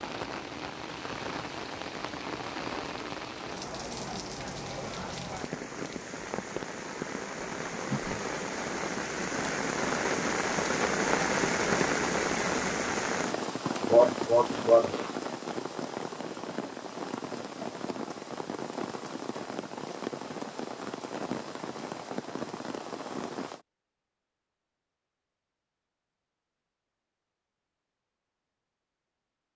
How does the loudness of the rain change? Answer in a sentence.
The loudness of the rain goes up, then down.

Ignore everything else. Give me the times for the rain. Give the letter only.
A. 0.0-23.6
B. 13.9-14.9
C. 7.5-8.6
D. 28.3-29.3
A.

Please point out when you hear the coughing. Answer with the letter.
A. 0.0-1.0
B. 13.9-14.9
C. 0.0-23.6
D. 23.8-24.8
B.